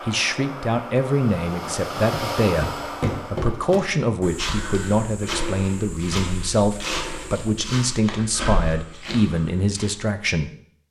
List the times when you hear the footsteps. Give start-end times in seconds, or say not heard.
1.6-9.9.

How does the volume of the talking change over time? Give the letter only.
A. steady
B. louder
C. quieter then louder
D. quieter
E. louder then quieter
A.